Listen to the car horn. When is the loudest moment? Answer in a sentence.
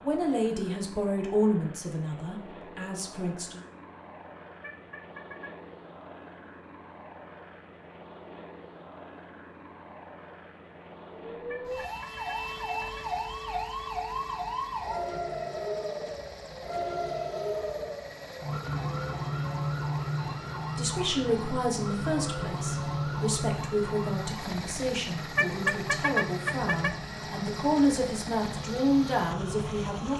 The volume of the car horn peaks at 26 seconds.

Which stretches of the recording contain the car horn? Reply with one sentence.
The car horn can be heard from 4.6 to 5.6 s, from 11.4 to 13.1 s and from 25.4 to 26.9 s.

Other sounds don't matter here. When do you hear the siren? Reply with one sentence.
You can hear the siren from 11.2 to 30.1 s.